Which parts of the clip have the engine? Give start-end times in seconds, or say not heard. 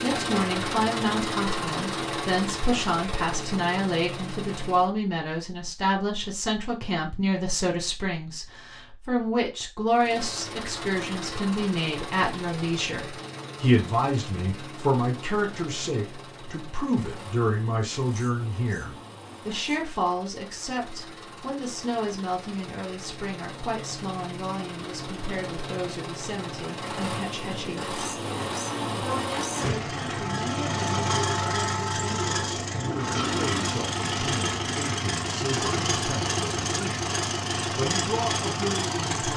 0.0-4.9, 9.9-39.3.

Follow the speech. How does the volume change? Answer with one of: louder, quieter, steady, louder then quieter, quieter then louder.
quieter.